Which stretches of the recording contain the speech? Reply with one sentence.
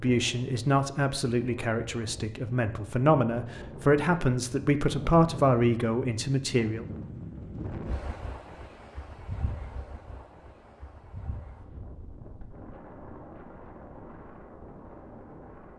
You can hear the speech from 0.0 to 6.8 s.